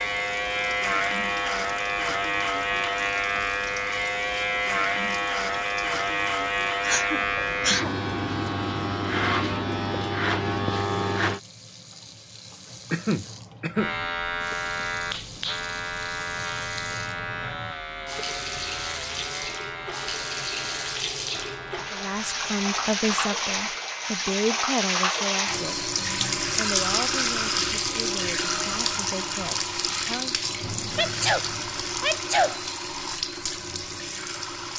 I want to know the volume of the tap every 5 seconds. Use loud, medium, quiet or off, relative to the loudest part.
quiet, quiet, quiet, medium, loud, loud, medium.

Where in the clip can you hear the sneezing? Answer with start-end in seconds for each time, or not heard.
6.8-7.9, 12.9-13.9, 30.9-32.6.